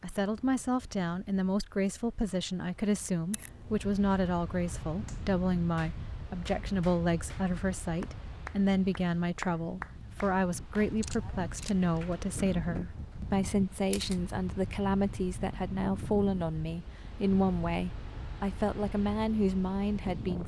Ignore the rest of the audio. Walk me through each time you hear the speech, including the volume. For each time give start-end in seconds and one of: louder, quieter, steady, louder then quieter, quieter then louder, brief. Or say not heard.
0.0-20.4 steady.